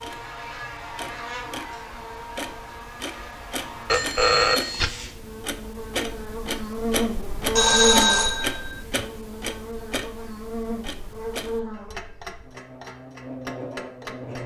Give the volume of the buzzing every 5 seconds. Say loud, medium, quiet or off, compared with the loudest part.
medium, loud, medium.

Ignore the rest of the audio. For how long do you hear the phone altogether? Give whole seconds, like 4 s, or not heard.
2 s.